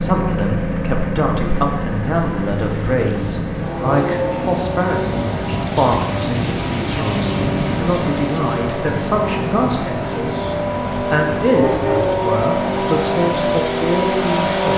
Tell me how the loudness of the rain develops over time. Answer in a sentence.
The volume of the rain goes up, then down.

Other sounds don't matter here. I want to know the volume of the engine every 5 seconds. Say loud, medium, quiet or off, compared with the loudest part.
loud, medium, loud.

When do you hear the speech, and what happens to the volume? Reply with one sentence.
The speech can be heard from 0.0 to 14.7 s, at a steady volume.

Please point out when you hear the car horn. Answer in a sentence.
The car horn can be heard from 11.6 to 12.2 s.